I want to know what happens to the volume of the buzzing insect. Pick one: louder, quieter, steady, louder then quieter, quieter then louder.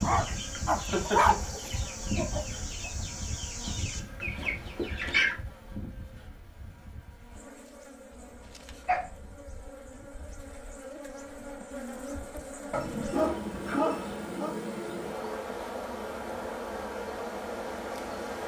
quieter then louder.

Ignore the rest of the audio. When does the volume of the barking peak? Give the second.
1 s.